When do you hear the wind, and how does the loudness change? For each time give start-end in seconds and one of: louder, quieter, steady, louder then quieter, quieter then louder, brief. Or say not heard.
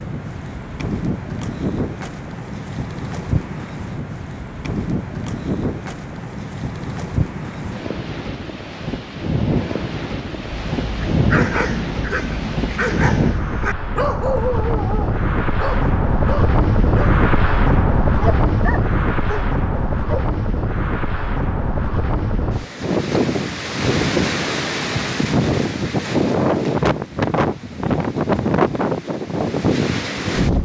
0.0-30.6 louder.